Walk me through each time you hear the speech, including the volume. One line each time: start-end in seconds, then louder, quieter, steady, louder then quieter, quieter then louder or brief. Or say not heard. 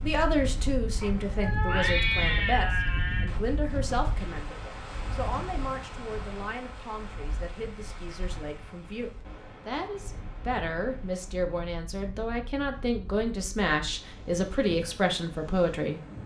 0.0-16.0 quieter then louder.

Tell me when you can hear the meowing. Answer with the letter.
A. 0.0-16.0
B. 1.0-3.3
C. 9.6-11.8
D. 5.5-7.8
B.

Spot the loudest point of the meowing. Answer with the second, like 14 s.
2 s.